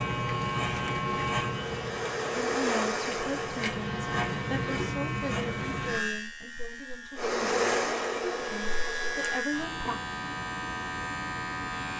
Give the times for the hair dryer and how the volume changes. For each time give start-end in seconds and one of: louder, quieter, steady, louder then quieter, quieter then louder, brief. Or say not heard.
0.0-4.8 louder then quieter
7.2-9.4 brief.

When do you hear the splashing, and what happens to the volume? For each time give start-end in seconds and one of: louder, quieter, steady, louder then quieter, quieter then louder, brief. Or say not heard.
not heard.